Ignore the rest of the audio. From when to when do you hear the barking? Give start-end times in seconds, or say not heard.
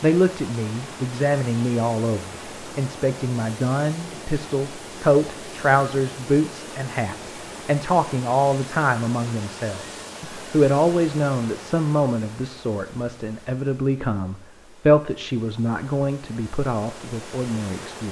not heard.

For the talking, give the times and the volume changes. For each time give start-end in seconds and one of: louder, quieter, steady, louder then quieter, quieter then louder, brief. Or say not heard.
0.0-18.0 steady.